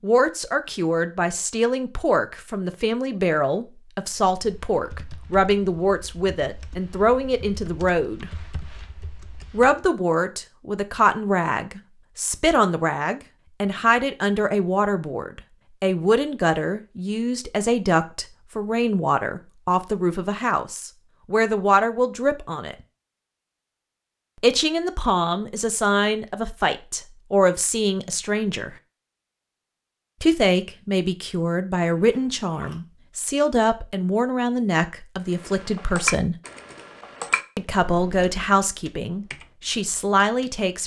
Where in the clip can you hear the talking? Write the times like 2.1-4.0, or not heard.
0.0-8.3, 9.5-22.8, 24.4-28.8, 30.2-36.4, 37.5-40.8.